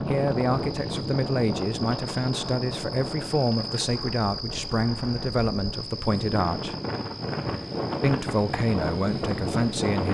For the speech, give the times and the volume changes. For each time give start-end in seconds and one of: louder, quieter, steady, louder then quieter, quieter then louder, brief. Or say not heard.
0.0-6.8 steady
8.0-10.0 brief.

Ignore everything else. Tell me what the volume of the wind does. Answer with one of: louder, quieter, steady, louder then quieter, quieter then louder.
quieter then louder.